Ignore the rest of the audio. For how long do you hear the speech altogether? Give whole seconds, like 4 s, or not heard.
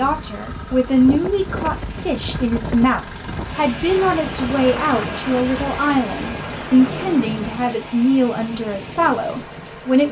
10 s.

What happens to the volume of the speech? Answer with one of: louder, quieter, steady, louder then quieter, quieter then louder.
steady.